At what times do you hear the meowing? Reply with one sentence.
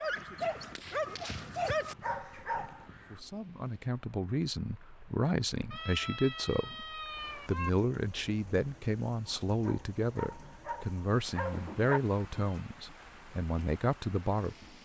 The meowing can be heard from 0.8 to 1.8 s, from 5.7 to 7.7 s and from 11.5 to 12.6 s.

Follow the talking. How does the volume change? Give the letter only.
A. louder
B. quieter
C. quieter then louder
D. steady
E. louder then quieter
D.